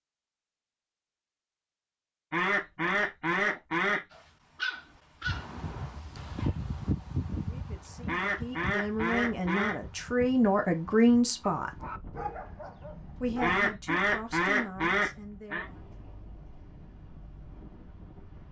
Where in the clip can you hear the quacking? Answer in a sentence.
You can hear the quacking from 2.3 to 4.0 s, from 8.1 to 9.8 s and from 13.4 to 15.7 s.